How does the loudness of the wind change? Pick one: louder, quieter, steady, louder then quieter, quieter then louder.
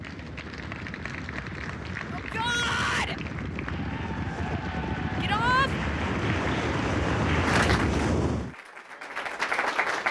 louder.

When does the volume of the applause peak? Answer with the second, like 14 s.
10 s.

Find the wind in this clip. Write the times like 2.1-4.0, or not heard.
0.0-8.6.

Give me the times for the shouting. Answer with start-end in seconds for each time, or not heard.
2.1-3.1, 5.2-5.7.